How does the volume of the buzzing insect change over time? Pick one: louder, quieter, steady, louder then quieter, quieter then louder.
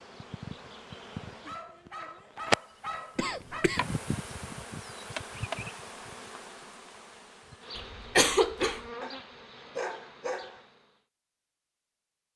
louder then quieter.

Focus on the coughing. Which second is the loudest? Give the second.
8 s.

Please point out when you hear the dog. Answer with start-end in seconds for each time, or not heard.
1.4-3.7, 9.0-10.7.